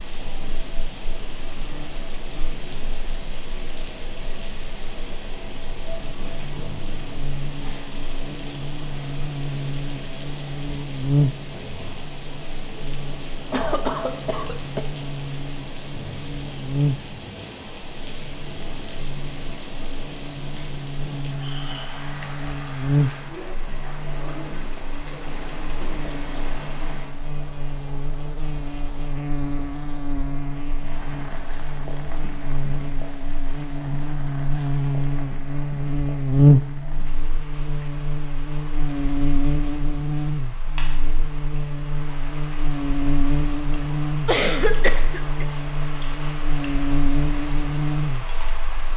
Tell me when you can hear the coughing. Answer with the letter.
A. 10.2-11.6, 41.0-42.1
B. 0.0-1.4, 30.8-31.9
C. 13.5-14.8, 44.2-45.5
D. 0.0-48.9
C.